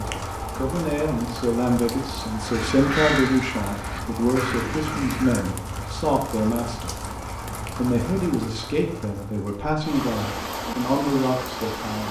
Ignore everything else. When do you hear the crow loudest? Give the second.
3 s.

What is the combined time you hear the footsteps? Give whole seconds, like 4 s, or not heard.
not heard.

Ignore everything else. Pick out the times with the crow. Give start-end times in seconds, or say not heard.
2.4-5.5.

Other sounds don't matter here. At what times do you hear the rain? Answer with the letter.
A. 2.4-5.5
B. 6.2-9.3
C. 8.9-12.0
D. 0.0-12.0
D.